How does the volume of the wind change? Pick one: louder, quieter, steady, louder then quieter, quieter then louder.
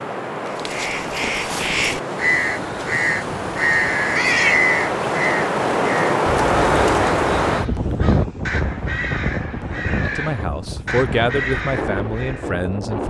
louder then quieter.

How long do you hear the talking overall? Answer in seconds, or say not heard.
3 s.